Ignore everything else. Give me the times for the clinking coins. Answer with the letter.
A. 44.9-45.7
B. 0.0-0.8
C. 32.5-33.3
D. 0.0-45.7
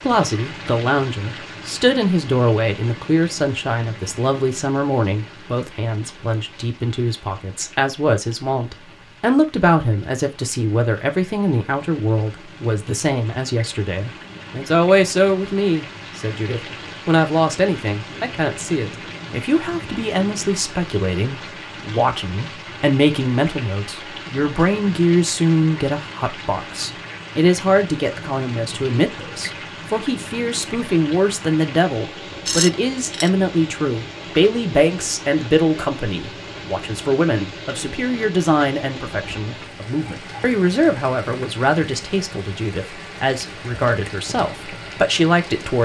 C.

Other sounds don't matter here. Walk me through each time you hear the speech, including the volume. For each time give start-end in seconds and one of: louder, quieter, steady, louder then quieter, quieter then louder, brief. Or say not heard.
0.0-45.7 steady.